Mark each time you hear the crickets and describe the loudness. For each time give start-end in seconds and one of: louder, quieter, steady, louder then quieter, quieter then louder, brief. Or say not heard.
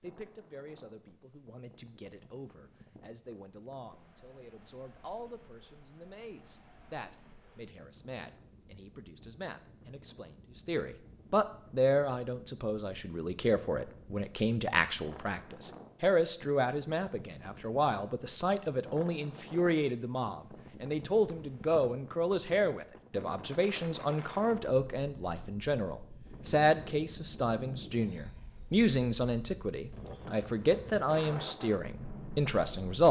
not heard.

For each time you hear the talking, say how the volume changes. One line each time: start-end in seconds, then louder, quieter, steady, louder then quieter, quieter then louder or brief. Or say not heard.
0.0-33.0 louder.